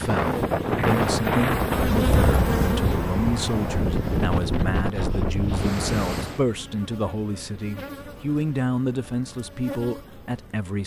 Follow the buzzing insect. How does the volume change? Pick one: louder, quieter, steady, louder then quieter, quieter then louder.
quieter.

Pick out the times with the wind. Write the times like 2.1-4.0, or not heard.
0.0-6.4.